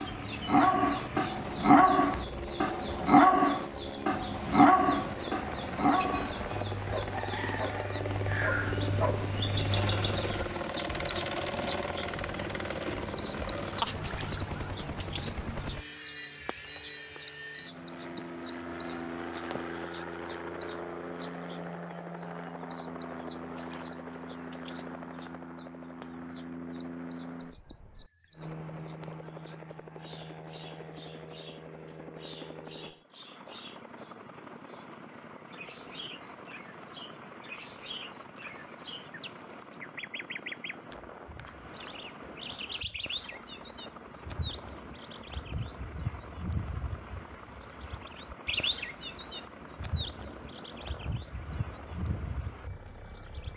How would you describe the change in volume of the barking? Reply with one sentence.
The volume of the barking goes down.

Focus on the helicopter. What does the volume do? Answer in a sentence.
The volume of the helicopter goes down.